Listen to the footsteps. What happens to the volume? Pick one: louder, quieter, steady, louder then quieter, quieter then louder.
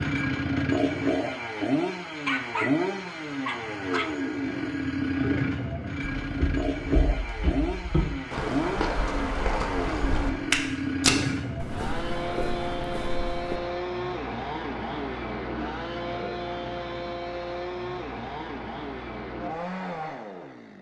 louder then quieter.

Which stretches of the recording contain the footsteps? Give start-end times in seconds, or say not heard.
6.2-13.6.